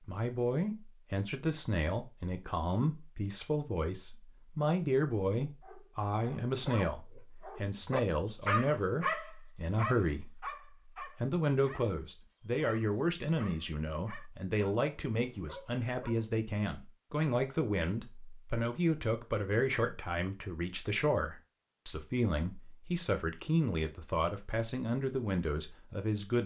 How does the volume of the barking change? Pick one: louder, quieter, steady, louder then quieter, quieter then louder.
louder then quieter.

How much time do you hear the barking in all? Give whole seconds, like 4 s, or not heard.
11 s.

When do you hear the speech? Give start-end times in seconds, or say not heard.
0.1-10.4, 11.2-26.4.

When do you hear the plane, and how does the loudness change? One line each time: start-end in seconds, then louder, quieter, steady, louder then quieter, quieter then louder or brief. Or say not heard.
not heard.